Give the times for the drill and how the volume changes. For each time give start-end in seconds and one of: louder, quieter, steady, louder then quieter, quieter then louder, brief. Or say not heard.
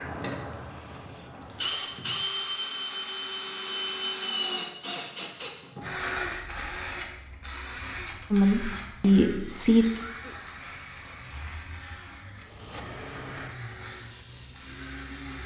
0.0-15.4 quieter.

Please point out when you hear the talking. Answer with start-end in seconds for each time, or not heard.
8.3-9.8.